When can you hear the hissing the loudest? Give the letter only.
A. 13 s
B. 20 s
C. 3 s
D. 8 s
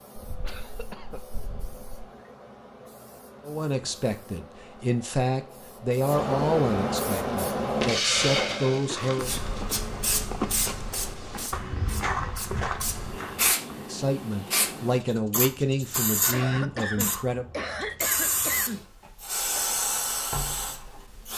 D.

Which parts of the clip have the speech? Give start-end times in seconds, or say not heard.
3.5-9.3, 13.8-17.4.